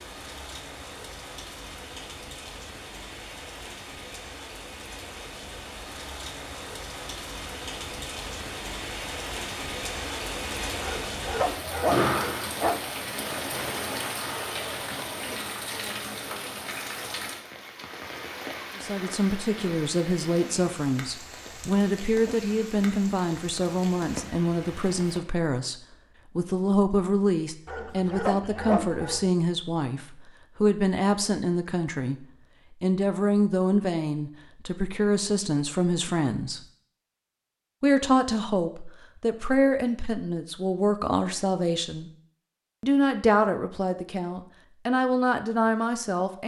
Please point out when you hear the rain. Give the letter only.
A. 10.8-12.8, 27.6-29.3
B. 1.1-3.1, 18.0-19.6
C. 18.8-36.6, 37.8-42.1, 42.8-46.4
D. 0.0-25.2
D.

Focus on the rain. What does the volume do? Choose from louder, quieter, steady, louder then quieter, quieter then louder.
louder then quieter.